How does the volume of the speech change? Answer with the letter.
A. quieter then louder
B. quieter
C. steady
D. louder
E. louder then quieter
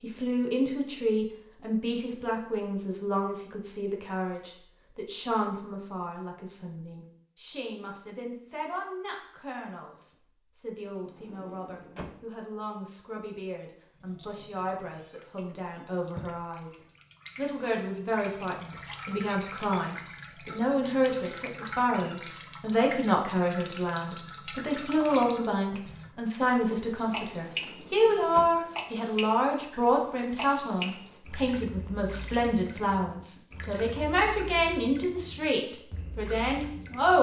A.